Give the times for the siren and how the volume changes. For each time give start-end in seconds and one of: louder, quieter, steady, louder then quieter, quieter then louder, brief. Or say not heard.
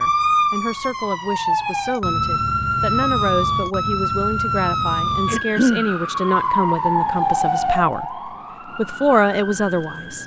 0.0-10.2 quieter.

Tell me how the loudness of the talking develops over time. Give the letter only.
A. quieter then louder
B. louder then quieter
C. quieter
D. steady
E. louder
E.